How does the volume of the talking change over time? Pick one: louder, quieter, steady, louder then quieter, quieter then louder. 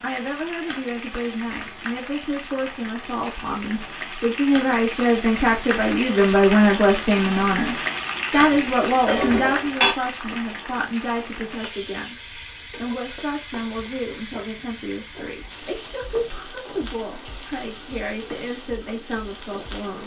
louder then quieter.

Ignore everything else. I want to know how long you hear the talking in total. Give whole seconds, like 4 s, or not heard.
20 s.